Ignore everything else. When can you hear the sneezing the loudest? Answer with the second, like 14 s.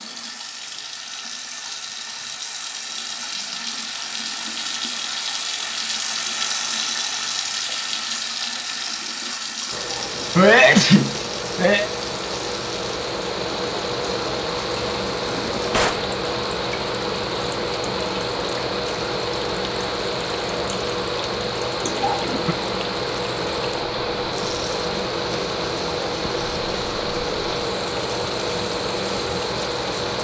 11 s.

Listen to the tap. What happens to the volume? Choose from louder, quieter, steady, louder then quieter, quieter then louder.
quieter.